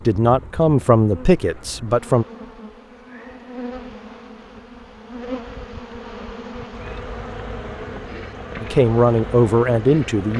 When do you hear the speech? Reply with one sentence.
The speech can be heard from 0.1 to 2.2 s and from 8.6 to 10.3 s.